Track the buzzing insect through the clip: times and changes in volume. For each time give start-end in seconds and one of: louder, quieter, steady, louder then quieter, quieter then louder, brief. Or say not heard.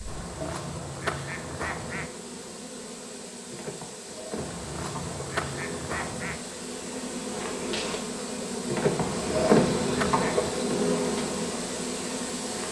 0.0-12.6 louder.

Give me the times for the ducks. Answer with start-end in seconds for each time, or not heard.
0.1-2.1, 4.3-6.4, 9.2-10.6.